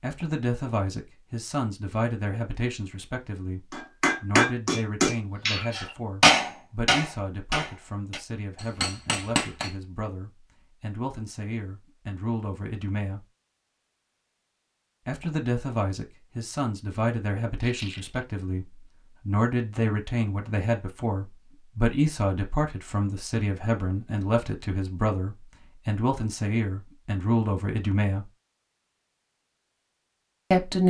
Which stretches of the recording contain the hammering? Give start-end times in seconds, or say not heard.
3.7-9.7.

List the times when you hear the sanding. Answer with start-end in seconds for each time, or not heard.
not heard.